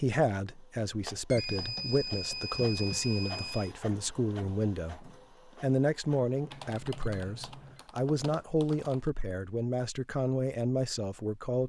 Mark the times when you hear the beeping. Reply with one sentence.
The beeping can be heard from 1.3 to 3.8 s and from 6.3 to 7.8 s.